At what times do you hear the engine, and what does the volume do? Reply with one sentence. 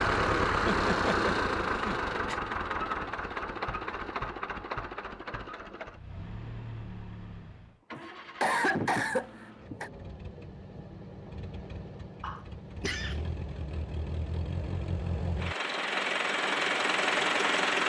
You can hear the engine from 0.0 to 17.8 s, getting quieter then louder.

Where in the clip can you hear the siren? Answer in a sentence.
The siren can't be heard in this clip.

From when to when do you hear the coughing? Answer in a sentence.
You can hear the coughing from 0.7 to 2.4 s, from 8.0 to 9.9 s and from 12.2 to 13.2 s.